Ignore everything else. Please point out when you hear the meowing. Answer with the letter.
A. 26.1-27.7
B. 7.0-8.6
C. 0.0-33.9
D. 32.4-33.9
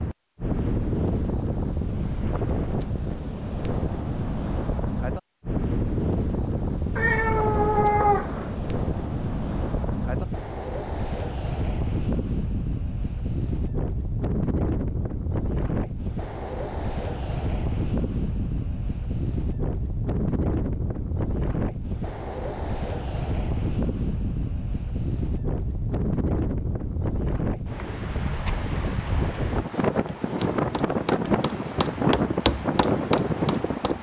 B.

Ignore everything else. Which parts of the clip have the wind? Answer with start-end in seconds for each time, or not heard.
0.0-33.9.